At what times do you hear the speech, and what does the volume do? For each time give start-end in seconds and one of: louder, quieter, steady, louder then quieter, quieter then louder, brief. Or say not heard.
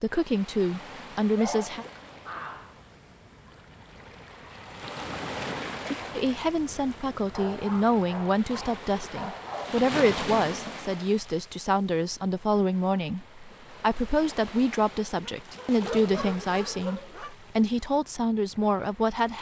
0.0-1.9 brief
6.2-19.3 steady.